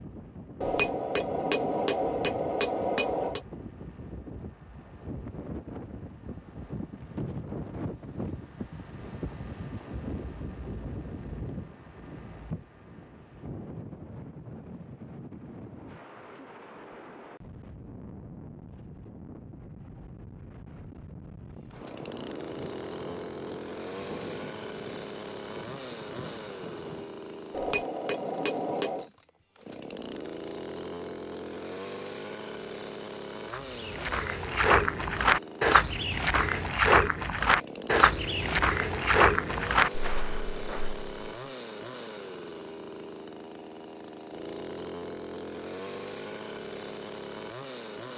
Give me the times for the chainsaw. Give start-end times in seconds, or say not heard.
21.7-48.1.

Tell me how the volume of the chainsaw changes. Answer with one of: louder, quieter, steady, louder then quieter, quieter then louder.
steady.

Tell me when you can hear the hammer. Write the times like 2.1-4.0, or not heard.
0.6-3.5, 27.5-29.1.